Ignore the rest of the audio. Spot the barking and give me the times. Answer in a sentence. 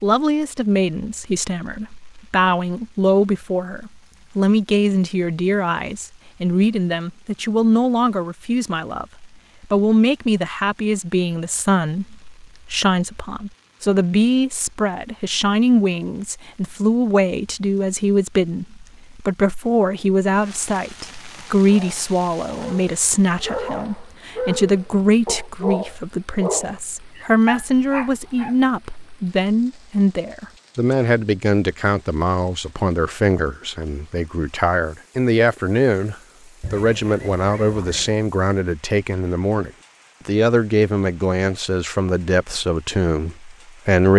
You can hear the barking from 21.6 to 28.6 s.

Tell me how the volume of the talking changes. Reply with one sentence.
The loudness of the talking stays about the same.